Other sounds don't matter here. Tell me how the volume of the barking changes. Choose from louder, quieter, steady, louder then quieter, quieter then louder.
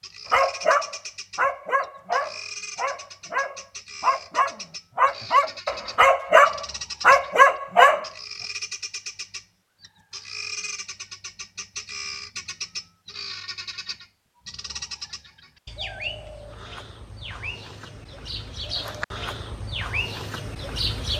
louder.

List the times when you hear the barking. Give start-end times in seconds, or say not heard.
0.3-8.1.